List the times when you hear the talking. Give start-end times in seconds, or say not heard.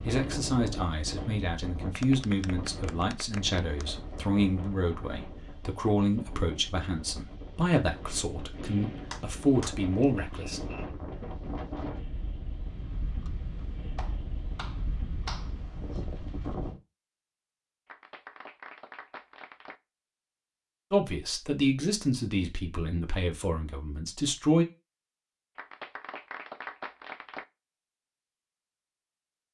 0.1-10.6, 20.9-24.6.